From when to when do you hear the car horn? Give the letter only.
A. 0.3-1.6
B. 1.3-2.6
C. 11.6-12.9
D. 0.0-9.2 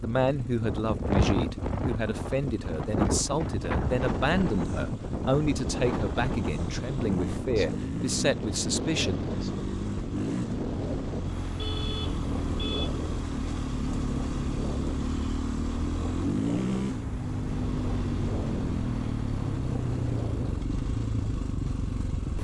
C.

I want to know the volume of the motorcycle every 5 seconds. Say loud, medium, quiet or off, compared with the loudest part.
medium, medium, loud, loud, loud.